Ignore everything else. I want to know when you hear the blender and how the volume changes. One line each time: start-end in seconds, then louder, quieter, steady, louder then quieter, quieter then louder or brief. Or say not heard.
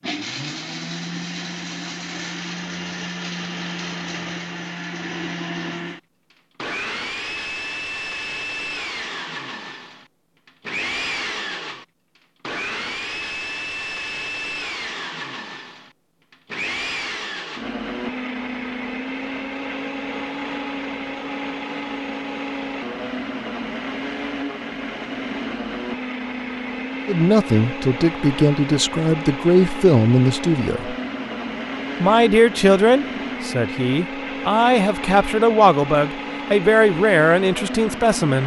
0.0-38.4 steady.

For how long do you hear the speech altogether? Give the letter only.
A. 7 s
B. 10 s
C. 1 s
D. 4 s
B.